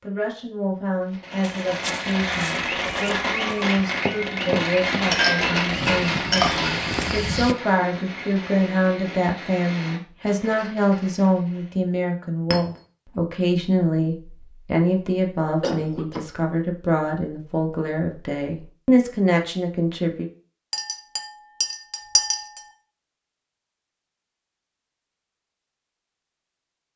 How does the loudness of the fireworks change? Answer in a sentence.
The volume of the fireworks goes down.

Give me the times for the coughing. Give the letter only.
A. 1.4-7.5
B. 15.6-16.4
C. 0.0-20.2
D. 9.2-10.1
B.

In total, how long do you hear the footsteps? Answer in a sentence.
You can hear the footsteps for 6 seconds altogether.